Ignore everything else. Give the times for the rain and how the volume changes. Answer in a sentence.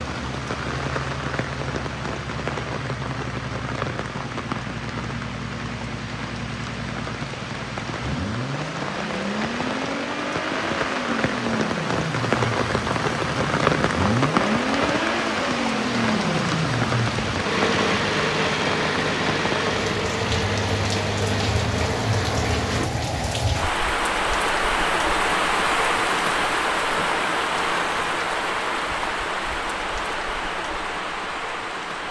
The rain can be heard from 0.0 to 32.0 s, getting louder.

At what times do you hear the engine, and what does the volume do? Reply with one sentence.
The engine can be heard from 0.0 to 22.9 s, getting louder.